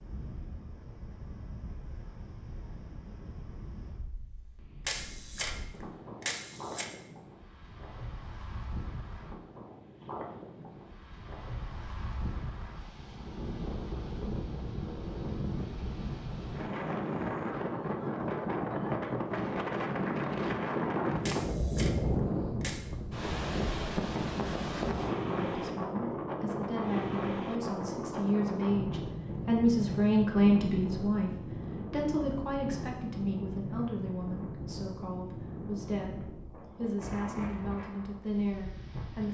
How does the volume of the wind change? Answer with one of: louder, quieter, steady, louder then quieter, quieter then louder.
louder then quieter.